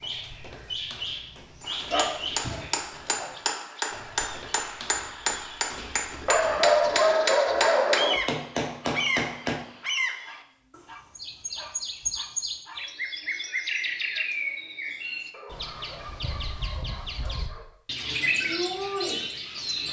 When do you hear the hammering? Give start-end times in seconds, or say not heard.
1.6-9.6.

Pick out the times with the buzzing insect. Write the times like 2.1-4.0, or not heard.
not heard.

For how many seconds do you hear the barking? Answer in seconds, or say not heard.
9 s.